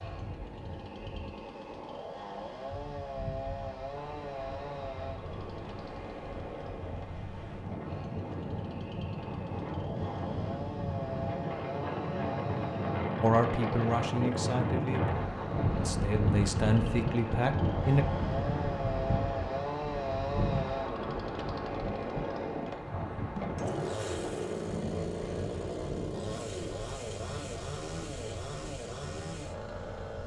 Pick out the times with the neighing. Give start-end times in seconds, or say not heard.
not heard.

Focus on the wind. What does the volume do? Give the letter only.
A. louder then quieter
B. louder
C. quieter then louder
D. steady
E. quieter
A.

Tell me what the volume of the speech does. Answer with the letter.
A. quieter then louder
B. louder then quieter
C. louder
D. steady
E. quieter
A.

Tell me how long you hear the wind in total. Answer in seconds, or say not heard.
30 s.